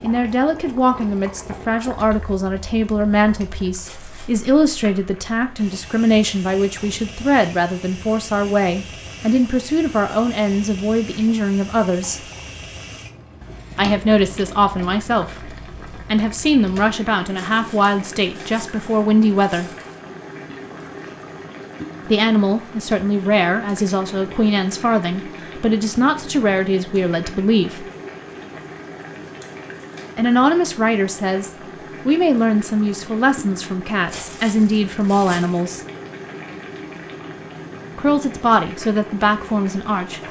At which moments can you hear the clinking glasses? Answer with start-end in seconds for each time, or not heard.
not heard.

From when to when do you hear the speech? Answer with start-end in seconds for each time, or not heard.
0.0-12.2, 13.8-19.7, 22.1-27.9, 30.1-35.8, 38.0-40.2.